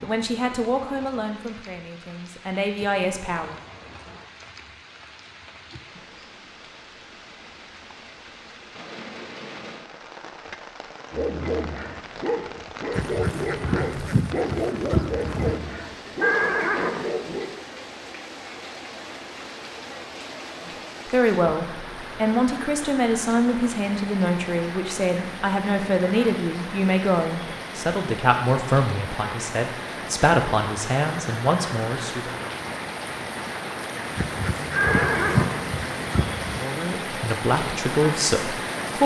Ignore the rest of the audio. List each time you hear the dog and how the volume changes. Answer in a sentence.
The dog can be heard from 11.1 to 17.5 s, at a steady volume.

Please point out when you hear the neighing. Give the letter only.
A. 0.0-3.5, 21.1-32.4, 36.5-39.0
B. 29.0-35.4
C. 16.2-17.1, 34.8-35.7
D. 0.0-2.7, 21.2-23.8
C.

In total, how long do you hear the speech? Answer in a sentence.
The speech can be heard for 17 seconds in total.